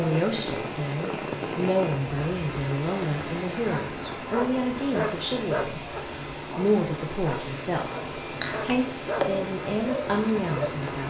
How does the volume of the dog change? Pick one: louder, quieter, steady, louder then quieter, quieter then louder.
quieter then louder.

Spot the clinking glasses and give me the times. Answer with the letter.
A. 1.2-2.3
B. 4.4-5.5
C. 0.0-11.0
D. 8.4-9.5
D.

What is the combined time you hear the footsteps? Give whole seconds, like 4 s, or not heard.
not heard.